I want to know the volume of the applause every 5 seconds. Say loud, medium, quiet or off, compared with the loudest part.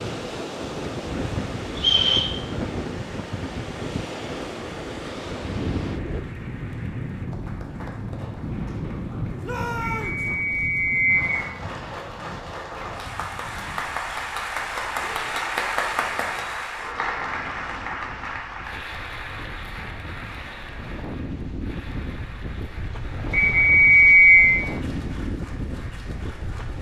quiet, quiet, loud, loud, quiet, quiet.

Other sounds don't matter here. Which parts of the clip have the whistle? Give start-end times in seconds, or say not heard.
1.8-2.4, 9.9-11.5, 23.3-24.6.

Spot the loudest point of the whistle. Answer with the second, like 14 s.
24 s.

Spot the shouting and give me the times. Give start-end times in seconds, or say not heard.
9.4-10.2.